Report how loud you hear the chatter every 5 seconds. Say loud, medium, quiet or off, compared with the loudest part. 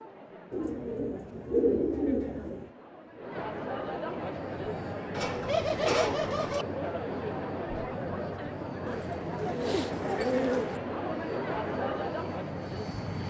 medium, loud, loud.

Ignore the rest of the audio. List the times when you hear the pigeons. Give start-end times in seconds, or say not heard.
0.5-2.7, 5.2-6.7, 8.8-10.8.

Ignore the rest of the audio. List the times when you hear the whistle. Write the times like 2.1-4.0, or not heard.
not heard.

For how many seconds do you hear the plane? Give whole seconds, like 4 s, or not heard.
9 s.